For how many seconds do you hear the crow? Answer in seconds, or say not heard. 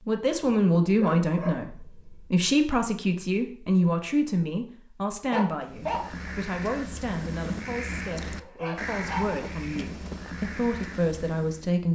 6 s.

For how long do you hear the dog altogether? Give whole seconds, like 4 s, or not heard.
4 s.